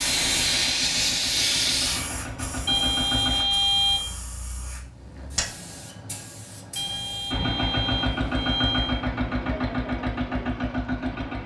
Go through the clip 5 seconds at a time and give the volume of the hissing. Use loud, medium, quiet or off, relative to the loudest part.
loud, medium, off.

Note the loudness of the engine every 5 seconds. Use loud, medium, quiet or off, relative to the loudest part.
medium, loud, loud.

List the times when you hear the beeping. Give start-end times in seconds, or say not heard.
2.6-4.1, 6.8-9.1.